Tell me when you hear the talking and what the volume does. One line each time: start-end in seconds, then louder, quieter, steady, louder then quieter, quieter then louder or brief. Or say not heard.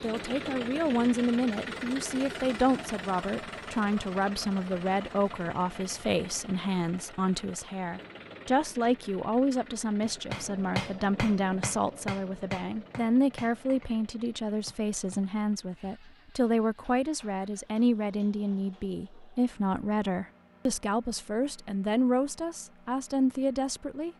0.0-24.1 steady.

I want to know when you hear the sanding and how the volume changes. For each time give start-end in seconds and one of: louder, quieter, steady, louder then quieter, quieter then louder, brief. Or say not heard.
not heard.